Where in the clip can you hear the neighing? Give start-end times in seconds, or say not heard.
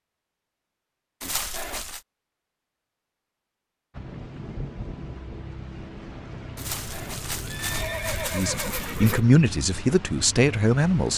1.2-2.0, 6.5-9.2.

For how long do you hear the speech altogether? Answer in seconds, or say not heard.
3 s.